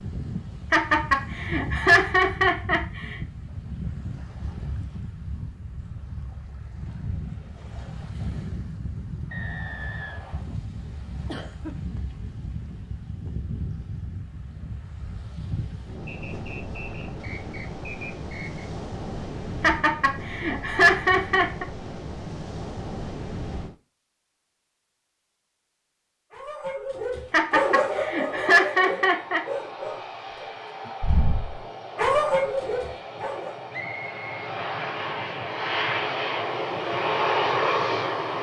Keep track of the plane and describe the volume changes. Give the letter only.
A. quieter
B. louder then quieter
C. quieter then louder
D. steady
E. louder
E.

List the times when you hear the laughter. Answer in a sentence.
You can hear the laughter from 0.7 to 3.1 s, from 19.6 to 21.6 s and from 27.3 to 29.4 s.